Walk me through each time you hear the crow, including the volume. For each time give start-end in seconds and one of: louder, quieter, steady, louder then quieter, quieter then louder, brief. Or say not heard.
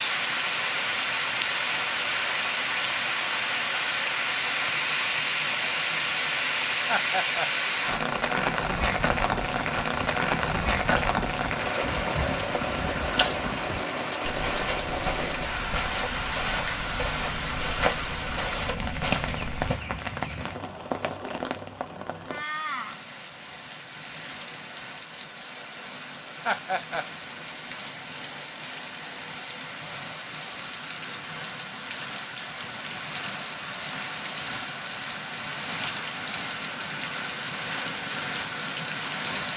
not heard.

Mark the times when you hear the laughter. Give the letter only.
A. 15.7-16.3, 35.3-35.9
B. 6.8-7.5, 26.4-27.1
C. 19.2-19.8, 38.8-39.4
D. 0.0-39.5
B.